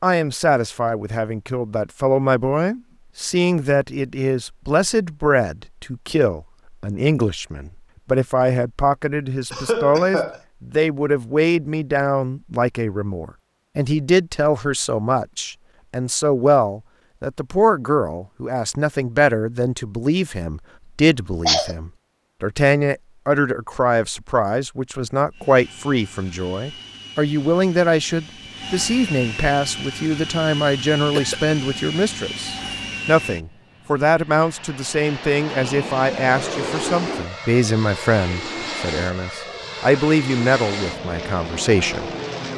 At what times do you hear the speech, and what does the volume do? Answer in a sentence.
You can hear the speech from 0.0 to 42.1 s, at a steady volume.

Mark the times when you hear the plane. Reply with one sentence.
The plane can be heard from 25.3 to 42.5 s.